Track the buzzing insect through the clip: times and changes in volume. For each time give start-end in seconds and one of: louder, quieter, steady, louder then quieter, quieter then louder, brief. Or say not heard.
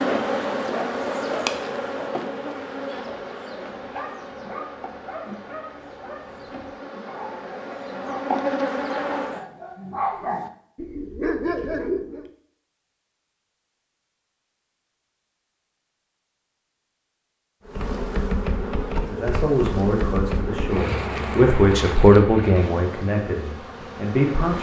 0.0-9.4 quieter then louder
17.6-24.5 quieter.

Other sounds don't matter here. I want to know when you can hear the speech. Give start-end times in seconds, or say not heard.
19.1-24.5.